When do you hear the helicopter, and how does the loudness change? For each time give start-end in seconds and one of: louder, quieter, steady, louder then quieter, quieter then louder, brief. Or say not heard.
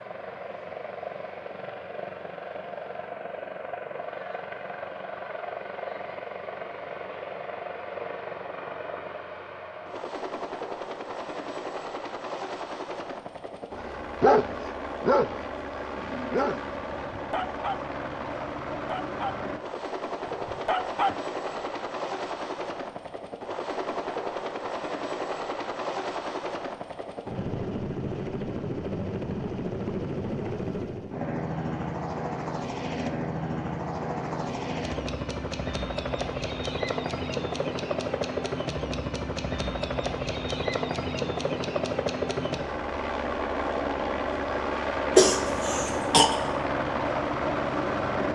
0.0-48.2 louder.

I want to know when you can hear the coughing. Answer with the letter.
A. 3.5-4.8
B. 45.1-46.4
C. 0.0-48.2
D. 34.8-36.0
B.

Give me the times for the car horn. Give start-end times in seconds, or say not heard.
not heard.